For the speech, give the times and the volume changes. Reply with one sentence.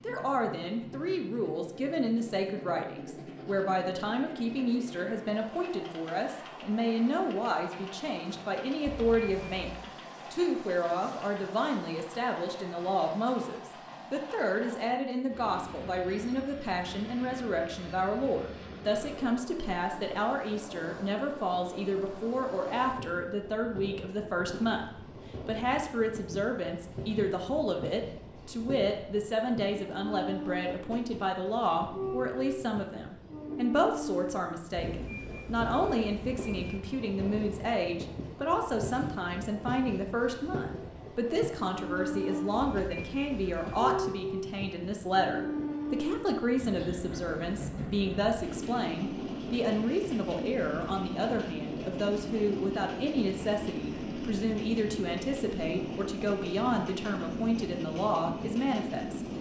The speech can be heard from 0.0 to 59.3 s, at a steady volume.